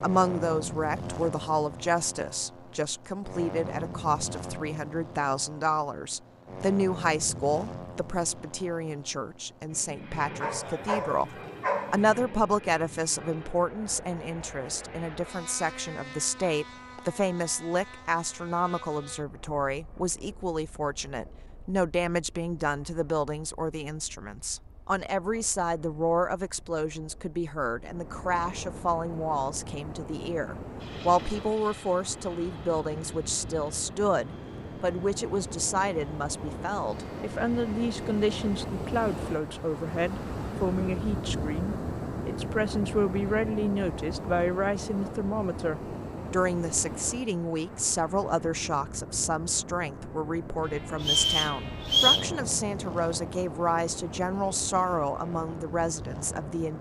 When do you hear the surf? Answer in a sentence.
The surf can be heard from 27.8 to 56.7 s.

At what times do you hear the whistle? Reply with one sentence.
You can hear the whistle from 51.0 to 52.3 s.